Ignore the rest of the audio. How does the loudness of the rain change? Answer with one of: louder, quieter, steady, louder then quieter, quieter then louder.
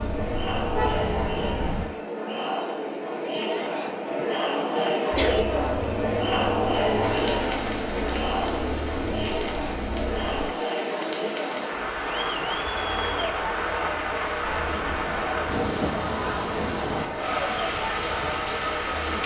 louder.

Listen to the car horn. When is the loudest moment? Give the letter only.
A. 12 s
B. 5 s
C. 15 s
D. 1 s
D.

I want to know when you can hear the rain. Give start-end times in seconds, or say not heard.
7.0-19.2.